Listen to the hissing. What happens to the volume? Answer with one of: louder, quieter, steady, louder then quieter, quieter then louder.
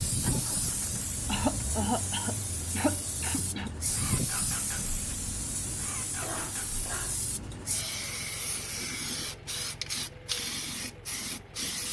steady.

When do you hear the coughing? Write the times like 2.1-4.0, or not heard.
1.2-3.8, 6.1-7.2.